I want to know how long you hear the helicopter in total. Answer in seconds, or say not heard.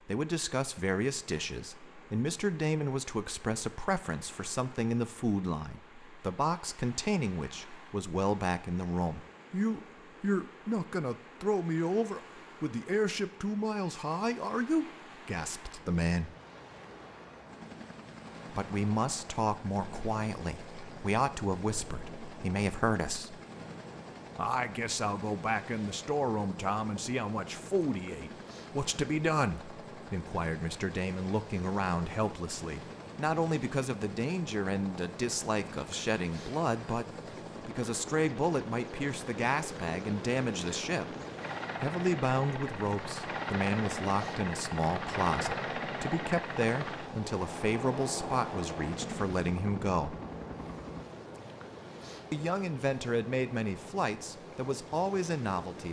34 s.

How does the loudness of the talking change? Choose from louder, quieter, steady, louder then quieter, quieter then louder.
steady.